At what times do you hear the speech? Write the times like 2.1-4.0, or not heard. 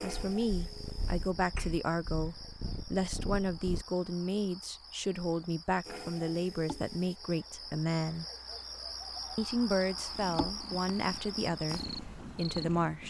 0.0-8.2, 9.3-13.0.